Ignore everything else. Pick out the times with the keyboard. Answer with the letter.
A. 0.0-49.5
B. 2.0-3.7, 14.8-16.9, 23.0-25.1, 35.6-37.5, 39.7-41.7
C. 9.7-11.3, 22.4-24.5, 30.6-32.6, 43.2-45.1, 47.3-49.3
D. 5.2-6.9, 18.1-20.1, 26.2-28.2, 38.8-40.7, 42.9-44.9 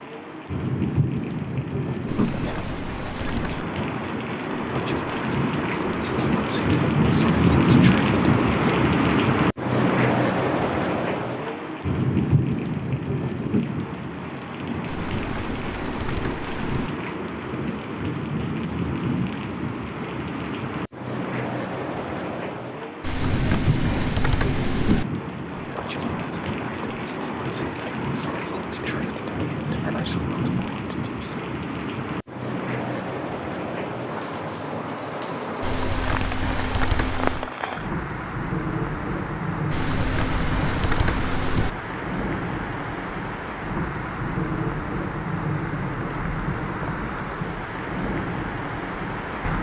B.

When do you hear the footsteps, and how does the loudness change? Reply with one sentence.
The footsteps can't be heard in this clip.